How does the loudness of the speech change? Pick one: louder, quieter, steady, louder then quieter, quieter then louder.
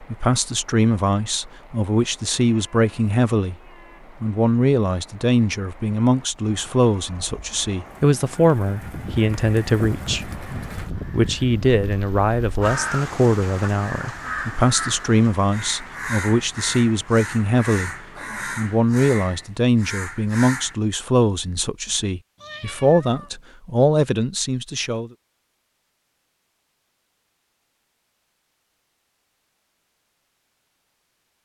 steady.